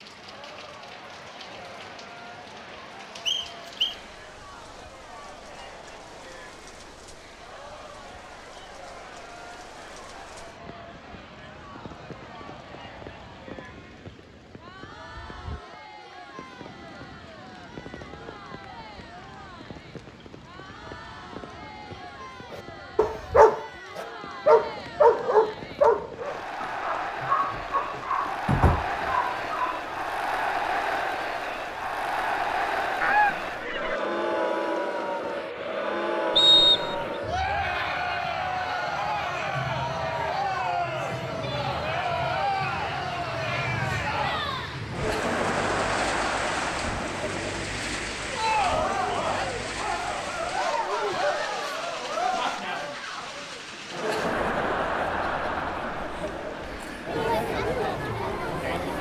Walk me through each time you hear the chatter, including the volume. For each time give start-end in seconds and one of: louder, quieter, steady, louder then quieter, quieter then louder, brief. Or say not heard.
0.1-58.9 louder.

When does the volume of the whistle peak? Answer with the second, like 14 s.
37 s.